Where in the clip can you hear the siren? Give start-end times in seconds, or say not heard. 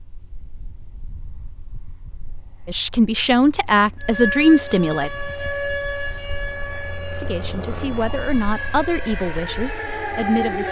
4.0-10.6.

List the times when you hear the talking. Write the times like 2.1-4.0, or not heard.
2.6-5.1, 7.1-10.6.